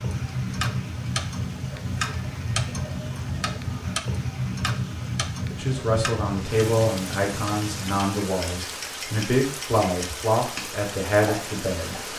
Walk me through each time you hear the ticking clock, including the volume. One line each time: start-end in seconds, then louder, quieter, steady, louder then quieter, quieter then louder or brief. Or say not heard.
0.0-12.1 quieter.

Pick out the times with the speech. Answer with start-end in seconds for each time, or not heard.
5.5-11.9.